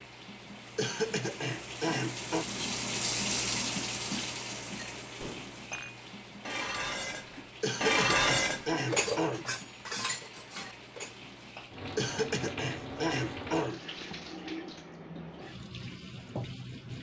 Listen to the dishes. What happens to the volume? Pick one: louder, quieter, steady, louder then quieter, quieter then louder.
louder then quieter.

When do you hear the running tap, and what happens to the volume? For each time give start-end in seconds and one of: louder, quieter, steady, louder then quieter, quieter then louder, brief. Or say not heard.
0.0-16.9 quieter then louder.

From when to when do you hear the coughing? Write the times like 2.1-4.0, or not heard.
0.8-2.5, 7.6-9.4, 11.9-13.8.